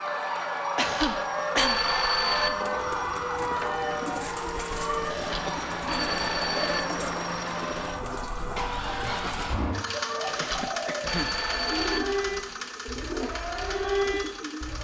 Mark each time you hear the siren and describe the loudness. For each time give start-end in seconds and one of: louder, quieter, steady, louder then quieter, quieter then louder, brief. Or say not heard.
0.0-14.7 quieter then louder.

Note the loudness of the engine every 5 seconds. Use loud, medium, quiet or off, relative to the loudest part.
medium, loud, loud.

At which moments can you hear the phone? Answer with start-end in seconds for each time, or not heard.
0.8-2.5, 5.0-6.8, 10.3-12.0.